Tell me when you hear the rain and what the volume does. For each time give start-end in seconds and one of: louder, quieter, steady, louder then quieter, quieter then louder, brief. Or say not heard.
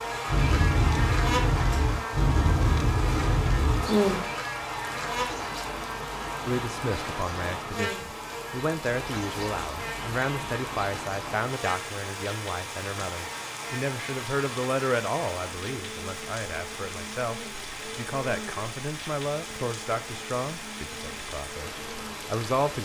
0.1-22.8 quieter.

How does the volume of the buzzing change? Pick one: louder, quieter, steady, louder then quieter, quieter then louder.
quieter.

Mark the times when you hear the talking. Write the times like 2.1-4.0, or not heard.
6.5-22.8.